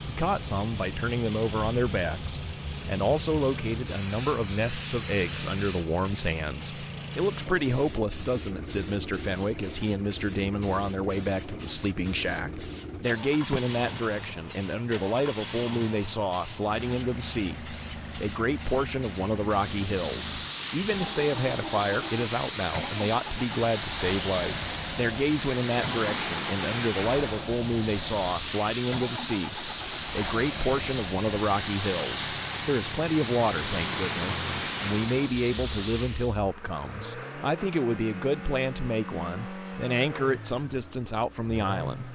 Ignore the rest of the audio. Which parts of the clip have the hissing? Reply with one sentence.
You can hear the hissing from 0.0 to 36.4 s.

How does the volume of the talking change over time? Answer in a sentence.
The volume of the talking stays about the same.